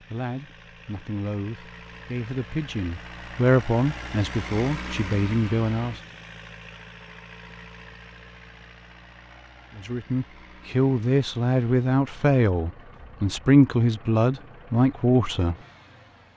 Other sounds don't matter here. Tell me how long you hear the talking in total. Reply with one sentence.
The talking can be heard for 12 seconds in total.